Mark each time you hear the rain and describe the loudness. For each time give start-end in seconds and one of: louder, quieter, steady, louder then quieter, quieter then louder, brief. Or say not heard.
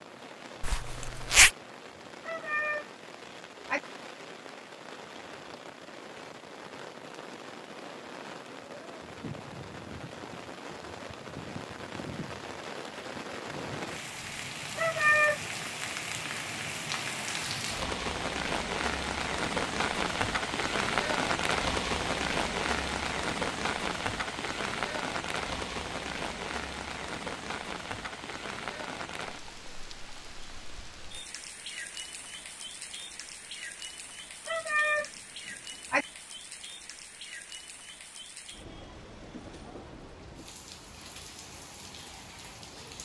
0.0-43.0 louder then quieter.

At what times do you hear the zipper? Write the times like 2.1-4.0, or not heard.
0.6-1.5.